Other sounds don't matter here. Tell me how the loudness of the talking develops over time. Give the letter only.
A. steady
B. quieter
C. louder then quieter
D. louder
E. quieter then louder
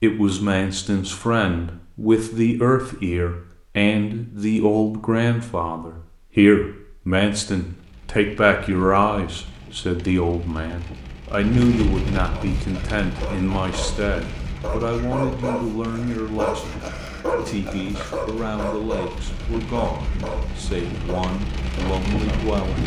B.